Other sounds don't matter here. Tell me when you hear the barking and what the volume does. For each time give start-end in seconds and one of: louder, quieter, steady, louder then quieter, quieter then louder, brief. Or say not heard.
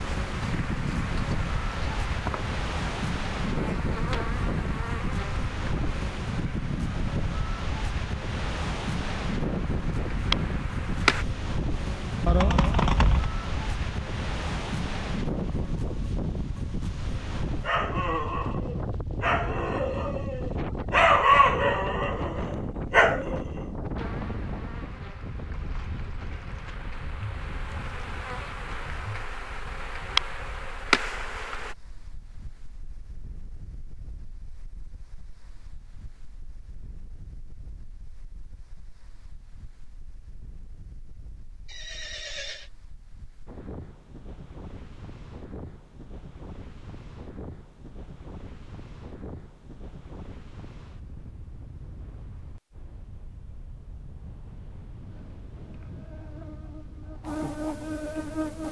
17.6-23.6 louder.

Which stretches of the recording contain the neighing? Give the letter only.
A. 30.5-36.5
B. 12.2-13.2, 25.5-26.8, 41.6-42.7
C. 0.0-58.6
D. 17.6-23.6
B.